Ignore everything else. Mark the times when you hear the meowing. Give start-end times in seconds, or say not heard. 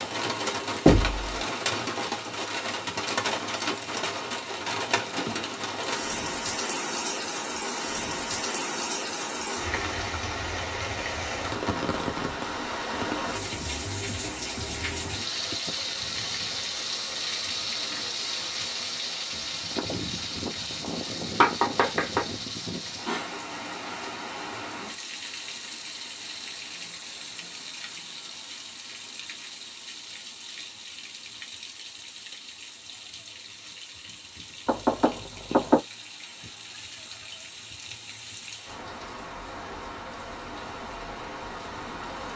not heard.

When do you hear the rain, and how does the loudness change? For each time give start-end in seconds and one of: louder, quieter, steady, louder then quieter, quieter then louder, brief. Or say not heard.
0.0-42.3 quieter.